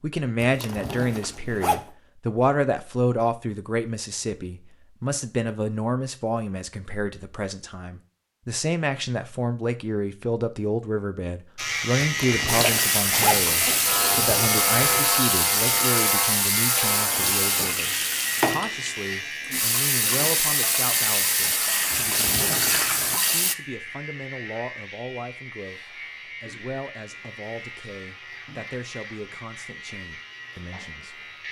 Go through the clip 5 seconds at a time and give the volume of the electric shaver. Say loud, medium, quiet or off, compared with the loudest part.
off, off, loud, loud, medium, quiet, quiet.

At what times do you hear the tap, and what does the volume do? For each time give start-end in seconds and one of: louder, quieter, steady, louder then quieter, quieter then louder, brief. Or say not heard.
12.4-23.6 steady.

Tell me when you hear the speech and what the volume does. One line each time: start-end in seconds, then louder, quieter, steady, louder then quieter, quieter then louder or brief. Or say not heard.
0.0-31.4 quieter.